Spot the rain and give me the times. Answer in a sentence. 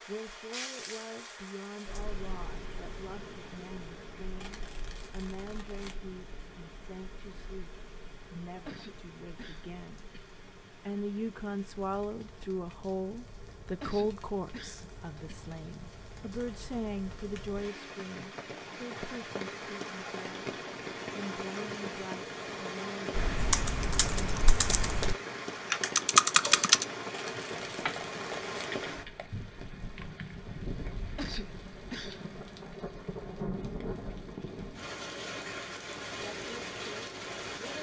You can hear the rain from 0.0 to 37.7 s.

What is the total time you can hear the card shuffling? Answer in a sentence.
The card shuffling can be heard for 3 seconds in total.